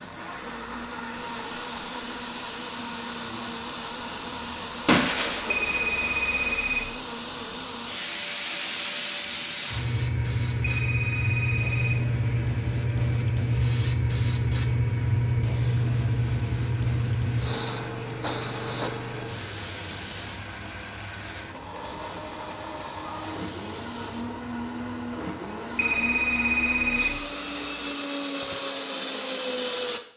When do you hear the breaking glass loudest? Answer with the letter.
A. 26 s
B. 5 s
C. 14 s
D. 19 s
B.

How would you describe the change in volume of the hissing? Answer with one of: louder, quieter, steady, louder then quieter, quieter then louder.
louder then quieter.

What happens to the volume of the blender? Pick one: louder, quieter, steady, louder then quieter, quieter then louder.
quieter then louder.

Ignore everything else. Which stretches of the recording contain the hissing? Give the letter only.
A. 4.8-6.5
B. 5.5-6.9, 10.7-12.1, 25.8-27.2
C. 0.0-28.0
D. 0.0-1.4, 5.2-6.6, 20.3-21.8
C.